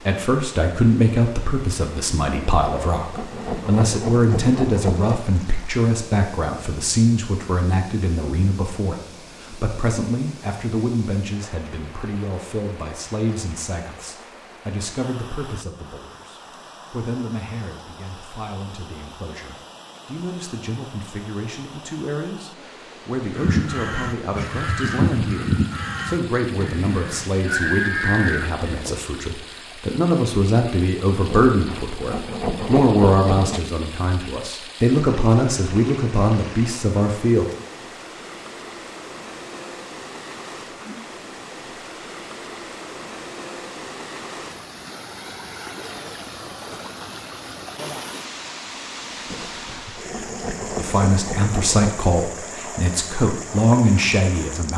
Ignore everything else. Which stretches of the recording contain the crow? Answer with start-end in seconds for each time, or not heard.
23.3-28.9.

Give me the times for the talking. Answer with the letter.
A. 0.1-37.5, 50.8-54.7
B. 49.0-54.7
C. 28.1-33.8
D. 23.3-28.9
A.